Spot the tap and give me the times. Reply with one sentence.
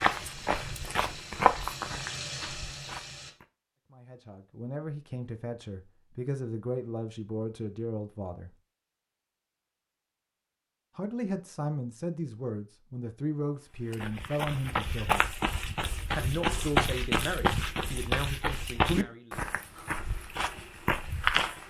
The tap can be heard from 0.0 to 3.4 s.